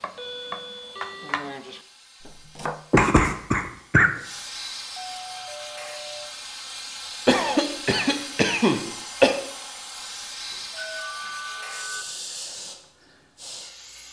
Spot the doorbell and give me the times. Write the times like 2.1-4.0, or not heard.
0.1-1.4, 5.0-6.3, 10.5-12.1.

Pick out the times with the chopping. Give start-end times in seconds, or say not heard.
0.0-2.9.